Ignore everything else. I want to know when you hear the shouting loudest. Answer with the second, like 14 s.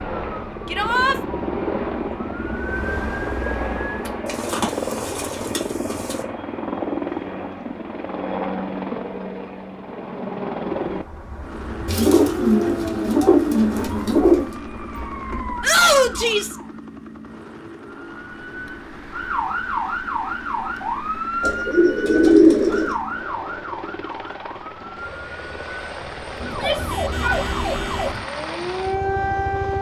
16 s.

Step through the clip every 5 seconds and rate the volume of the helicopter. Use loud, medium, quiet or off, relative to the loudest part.
loud, loud, loud, medium, medium, medium.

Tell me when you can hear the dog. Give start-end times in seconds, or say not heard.
not heard.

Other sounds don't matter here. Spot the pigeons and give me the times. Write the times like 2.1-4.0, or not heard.
4.2-6.2, 11.8-14.6, 21.4-22.9.